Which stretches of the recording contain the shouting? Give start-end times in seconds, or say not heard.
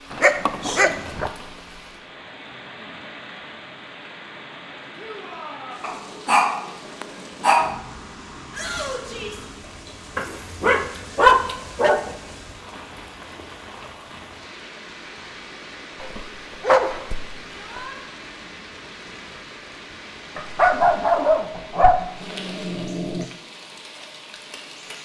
5.0-5.8, 8.5-9.4, 17.5-17.9.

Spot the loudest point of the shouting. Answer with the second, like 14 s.
9 s.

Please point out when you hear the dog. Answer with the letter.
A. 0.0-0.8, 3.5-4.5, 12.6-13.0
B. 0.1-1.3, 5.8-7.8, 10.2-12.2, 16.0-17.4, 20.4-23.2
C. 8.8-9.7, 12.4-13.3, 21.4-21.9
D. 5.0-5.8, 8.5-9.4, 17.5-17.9
B.